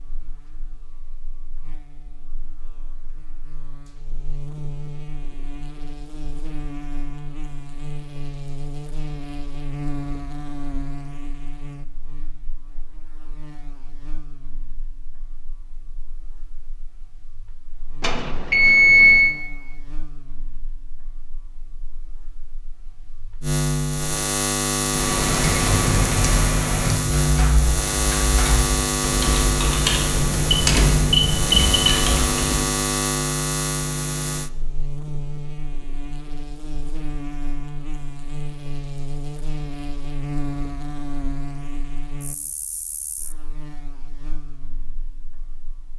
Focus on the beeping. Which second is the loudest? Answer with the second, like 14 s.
19 s.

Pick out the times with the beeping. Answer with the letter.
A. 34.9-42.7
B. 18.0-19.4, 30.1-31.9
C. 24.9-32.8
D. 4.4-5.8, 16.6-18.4
B.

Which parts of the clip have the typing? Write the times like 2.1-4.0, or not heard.
24.9-32.8.